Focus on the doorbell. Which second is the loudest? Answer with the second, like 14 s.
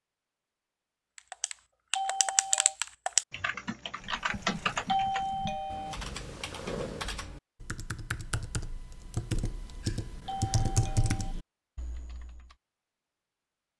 5 s.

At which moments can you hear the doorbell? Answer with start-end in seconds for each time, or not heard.
1.9-2.8, 4.8-6.0, 10.2-11.3.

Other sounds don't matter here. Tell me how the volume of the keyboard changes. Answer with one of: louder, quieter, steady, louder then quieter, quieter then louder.
quieter then louder.